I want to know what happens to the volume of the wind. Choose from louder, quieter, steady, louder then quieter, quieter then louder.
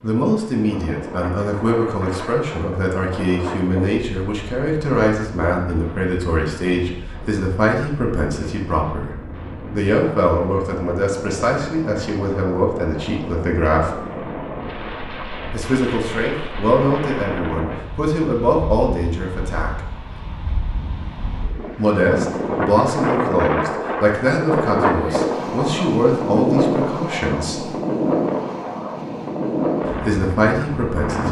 louder.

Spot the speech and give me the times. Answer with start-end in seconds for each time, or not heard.
0.0-13.9, 15.5-19.8, 21.8-27.7, 29.9-31.2.